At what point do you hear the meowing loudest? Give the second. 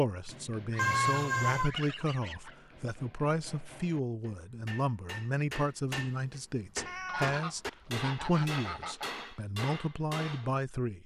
1 s.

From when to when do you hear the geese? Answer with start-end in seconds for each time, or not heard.
0.7-2.5, 7.0-9.1.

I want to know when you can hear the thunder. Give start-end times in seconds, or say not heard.
not heard.